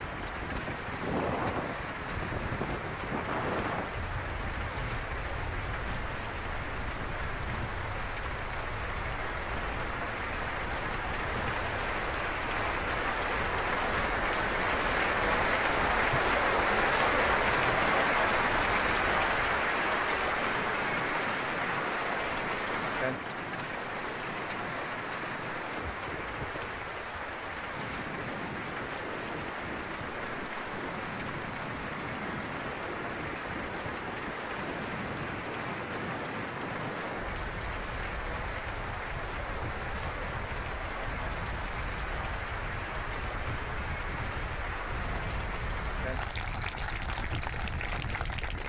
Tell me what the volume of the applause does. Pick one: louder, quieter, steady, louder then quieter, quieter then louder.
louder then quieter.